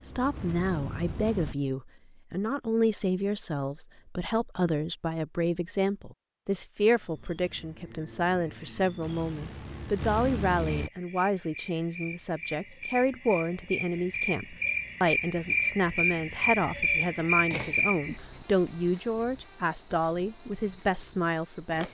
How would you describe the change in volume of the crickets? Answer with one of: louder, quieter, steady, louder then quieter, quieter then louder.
louder then quieter.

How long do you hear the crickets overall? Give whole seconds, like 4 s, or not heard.
15 s.